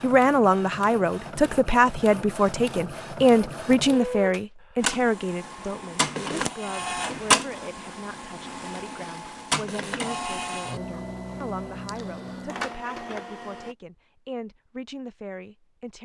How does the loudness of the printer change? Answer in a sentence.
The loudness of the printer goes up, then down.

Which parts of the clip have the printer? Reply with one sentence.
You can hear the printer from 0.0 to 13.8 s.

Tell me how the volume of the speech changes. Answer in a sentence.
The loudness of the speech goes down.